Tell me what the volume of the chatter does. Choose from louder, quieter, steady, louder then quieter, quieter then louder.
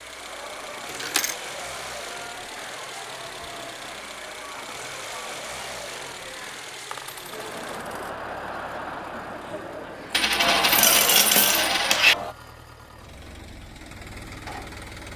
louder.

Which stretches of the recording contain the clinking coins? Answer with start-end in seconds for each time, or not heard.
0.8-1.4, 6.9-8.2, 10.1-12.2.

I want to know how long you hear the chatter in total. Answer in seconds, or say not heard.
12 s.